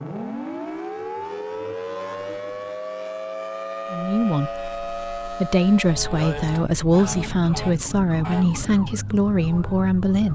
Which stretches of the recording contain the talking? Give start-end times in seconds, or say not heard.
3.9-10.3.